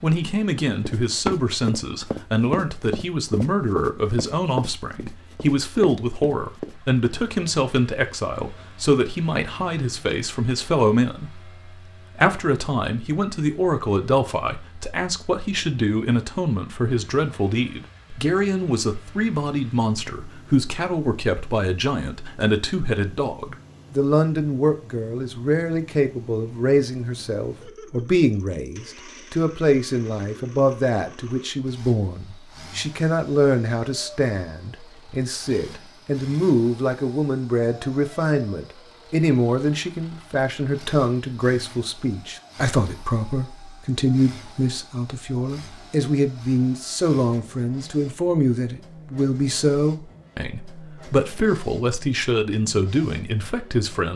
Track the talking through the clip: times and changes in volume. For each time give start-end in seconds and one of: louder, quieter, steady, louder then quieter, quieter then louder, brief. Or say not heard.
0.0-11.5 steady
12.2-54.1 steady.